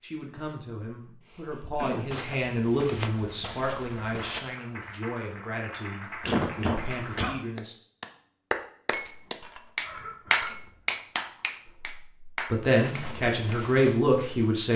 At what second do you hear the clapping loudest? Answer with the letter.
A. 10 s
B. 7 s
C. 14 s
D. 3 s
A.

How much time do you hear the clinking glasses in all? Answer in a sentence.
You can hear the clinking glasses for 2 seconds altogether.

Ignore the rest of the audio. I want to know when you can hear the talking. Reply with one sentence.
The talking can be heard from 0.0 to 7.8 s and from 11.7 to 14.7 s.